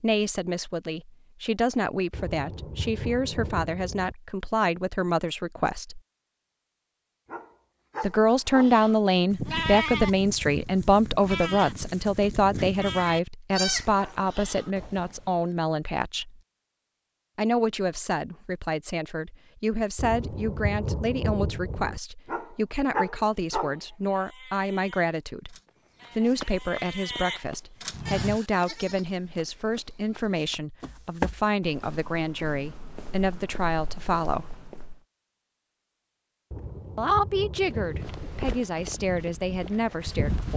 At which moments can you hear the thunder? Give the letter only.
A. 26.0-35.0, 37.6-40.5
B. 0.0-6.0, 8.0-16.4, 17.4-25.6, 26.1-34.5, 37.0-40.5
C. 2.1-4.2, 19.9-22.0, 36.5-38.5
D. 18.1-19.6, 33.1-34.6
C.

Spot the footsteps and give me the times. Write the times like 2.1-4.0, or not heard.
26.0-35.0, 37.6-40.5.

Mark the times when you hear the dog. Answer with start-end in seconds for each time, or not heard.
7.2-8.8, 22.2-23.8.